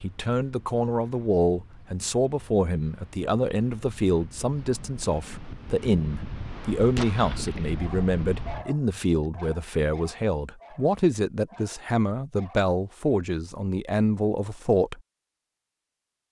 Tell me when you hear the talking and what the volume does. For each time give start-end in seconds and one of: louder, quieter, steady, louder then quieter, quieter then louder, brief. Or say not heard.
0.0-15.0 steady.